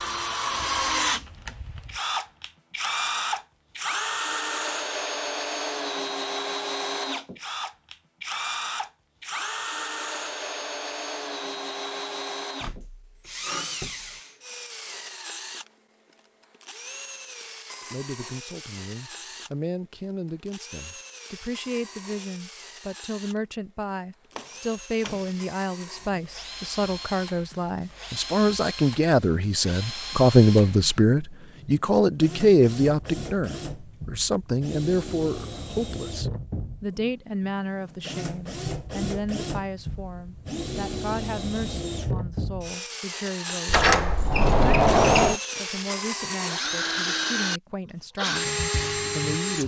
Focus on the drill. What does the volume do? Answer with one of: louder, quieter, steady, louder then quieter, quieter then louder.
quieter then louder.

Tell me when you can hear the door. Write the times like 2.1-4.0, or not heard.
12.6-14.2, 24.3-25.4, 43.6-45.4.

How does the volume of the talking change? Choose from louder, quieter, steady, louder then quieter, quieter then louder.
louder then quieter.